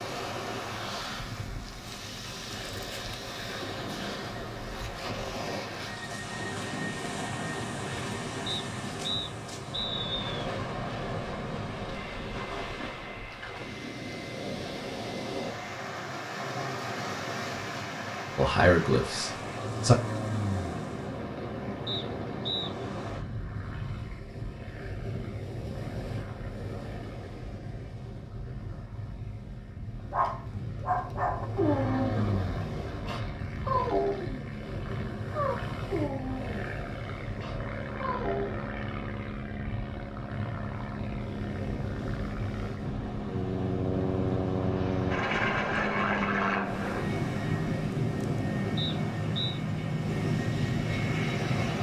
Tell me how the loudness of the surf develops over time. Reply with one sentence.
The loudness of the surf stays about the same.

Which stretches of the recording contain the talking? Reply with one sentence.
You can hear the talking from 18.4 to 19.9 s.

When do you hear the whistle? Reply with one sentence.
The whistle can be heard from 8.4 to 10.3 s, from 21.9 to 22.7 s and from 48.8 to 49.6 s.